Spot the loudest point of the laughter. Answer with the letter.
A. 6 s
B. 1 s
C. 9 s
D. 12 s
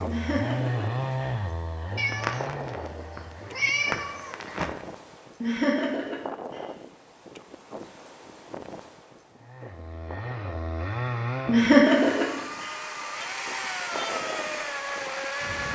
D.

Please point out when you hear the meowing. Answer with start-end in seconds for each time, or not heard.
1.9-4.7.